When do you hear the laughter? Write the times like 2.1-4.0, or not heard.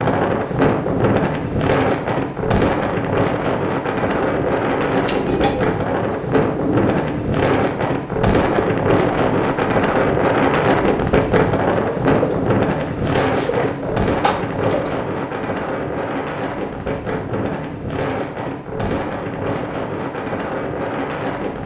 not heard.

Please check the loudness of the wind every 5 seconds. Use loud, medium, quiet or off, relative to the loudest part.
loud, loud, loud, medium, medium.